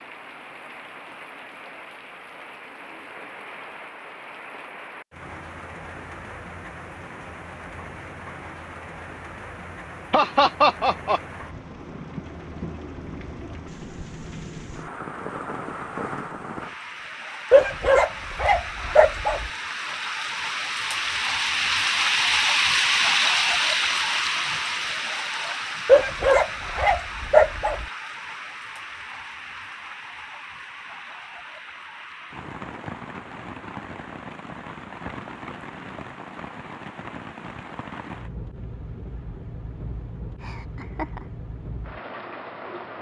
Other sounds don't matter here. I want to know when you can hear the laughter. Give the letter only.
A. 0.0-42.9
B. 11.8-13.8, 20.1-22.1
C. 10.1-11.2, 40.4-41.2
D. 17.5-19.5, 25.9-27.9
C.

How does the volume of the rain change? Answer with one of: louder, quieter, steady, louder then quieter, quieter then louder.
louder then quieter.